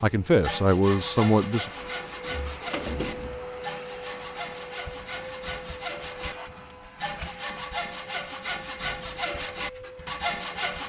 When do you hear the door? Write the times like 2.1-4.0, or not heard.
1.8-3.5.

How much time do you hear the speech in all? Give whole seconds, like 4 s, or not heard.
2 s.